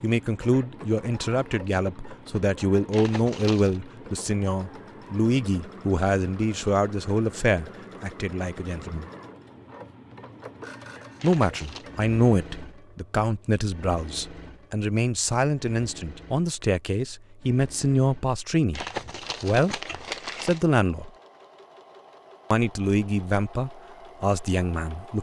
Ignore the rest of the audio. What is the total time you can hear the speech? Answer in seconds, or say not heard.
21 s.